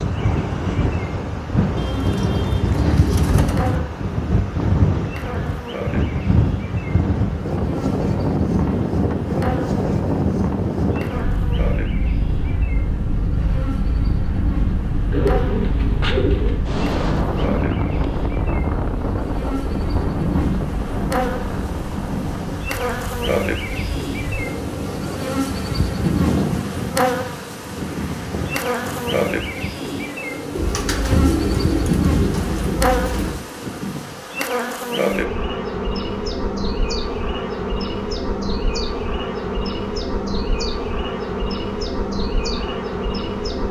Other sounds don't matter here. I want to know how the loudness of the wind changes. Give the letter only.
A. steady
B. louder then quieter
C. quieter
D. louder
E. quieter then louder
C.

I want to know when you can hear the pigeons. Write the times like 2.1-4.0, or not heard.
1.8-3.8, 15.1-16.6, 30.6-33.4.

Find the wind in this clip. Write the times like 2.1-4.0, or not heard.
0.0-29.4.